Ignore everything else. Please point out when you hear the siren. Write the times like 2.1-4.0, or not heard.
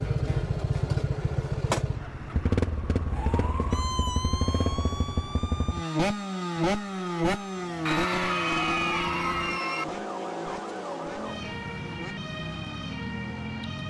3.0-13.8.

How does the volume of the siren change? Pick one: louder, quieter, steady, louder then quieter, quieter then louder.
quieter then louder.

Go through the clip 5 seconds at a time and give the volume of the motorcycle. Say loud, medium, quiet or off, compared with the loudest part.
loud, loud, quiet.